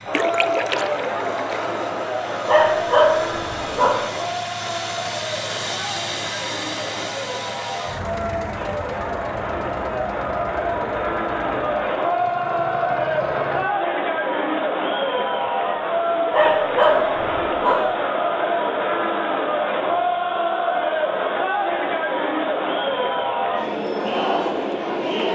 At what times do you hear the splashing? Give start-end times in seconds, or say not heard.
0.1-1.8.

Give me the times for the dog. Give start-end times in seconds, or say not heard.
2.5-4.0, 16.3-17.9.